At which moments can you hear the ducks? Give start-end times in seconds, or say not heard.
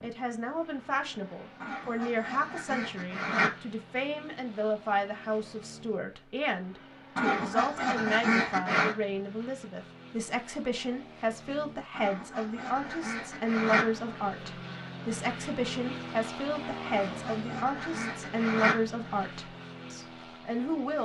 1.6-3.5, 7.2-8.9, 11.9-13.8, 16.9-18.8.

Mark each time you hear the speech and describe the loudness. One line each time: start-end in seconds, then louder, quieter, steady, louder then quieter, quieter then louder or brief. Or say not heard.
0.0-20.9 steady.